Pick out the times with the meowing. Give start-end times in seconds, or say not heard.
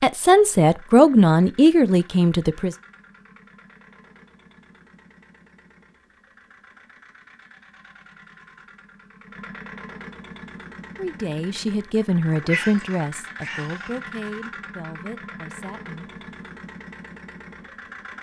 12.3-13.9.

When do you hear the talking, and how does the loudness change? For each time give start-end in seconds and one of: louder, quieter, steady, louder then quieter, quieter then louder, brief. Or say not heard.
0.0-2.8 brief
10.9-16.2 quieter.